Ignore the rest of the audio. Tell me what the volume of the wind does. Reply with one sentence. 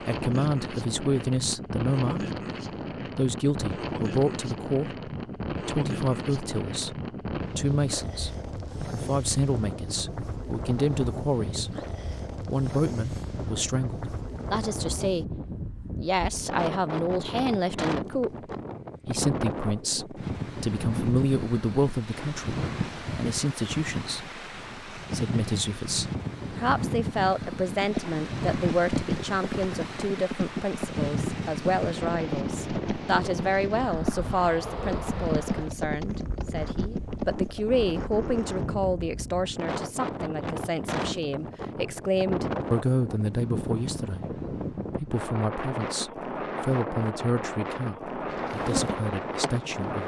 The loudness of the wind stays about the same.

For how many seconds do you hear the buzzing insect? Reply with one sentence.
You can hear the buzzing insect for 2 seconds altogether.